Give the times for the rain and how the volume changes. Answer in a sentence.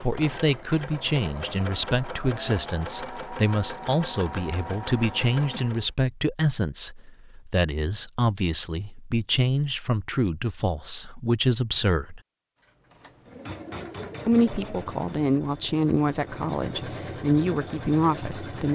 The rain can't be heard in this clip.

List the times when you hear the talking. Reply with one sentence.
You can hear the talking from 0.0 to 12.2 s and from 14.2 to 18.7 s.